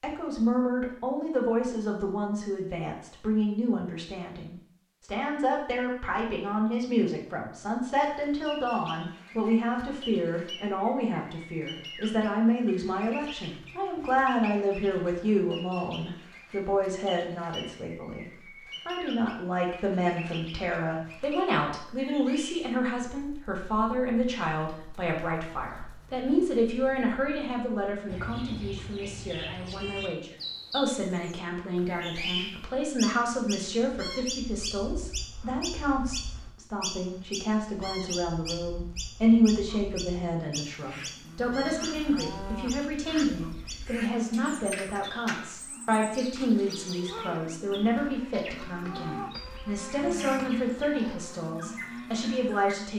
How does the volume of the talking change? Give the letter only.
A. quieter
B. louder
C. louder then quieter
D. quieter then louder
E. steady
E.